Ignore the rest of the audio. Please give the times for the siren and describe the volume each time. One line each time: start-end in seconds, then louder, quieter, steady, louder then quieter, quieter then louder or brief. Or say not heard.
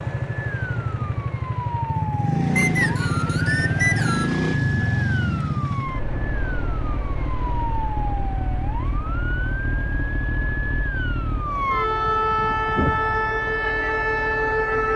0.0-14.9 louder.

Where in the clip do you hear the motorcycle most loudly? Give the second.
4 s.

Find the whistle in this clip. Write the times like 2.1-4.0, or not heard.
2.5-4.3.